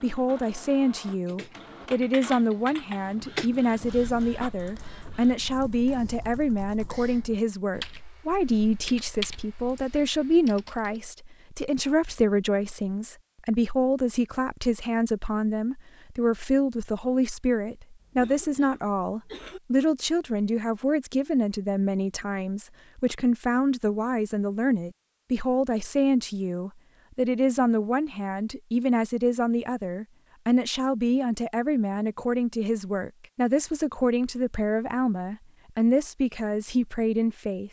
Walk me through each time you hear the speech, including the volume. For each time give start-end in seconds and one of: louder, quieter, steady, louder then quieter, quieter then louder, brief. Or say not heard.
0.0-37.6 steady.